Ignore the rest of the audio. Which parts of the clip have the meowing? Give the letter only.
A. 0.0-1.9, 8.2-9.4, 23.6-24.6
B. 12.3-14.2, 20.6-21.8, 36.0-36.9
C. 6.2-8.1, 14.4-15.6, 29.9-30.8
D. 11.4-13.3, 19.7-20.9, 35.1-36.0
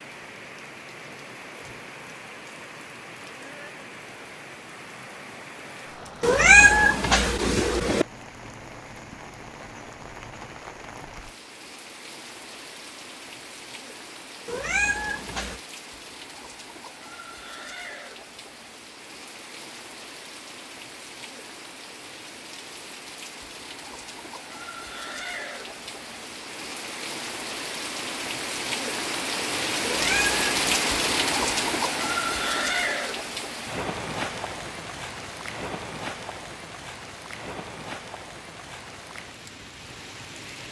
C.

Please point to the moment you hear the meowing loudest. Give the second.
7 s.